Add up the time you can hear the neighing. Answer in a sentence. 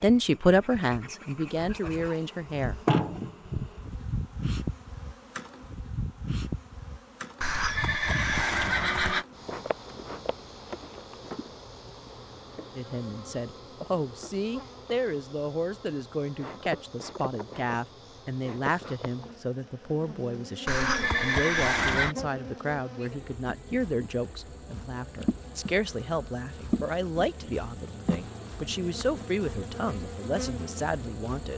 You can hear the neighing for 3 seconds altogether.